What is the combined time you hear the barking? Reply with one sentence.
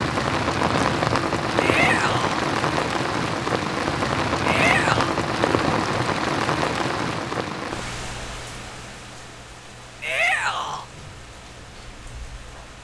The barking can't be heard in this clip.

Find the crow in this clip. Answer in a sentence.
You can't hear the crow here.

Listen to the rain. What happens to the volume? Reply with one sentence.
The loudness of the rain goes down.